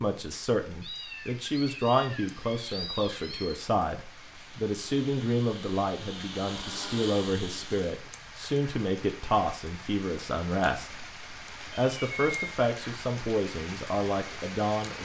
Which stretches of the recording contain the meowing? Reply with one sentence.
You can hear the meowing from 0.8 to 3.6 s and from 11.2 to 12.6 s.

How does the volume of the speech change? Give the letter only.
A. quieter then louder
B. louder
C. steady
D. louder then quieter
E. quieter
C.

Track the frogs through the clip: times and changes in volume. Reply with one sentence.
The frogs can't be heard in this clip.